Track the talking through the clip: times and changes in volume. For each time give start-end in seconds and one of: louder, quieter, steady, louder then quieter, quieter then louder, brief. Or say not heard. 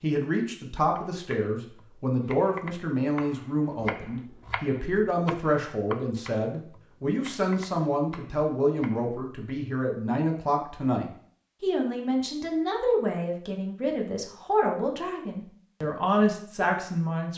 0.0-17.3 steady.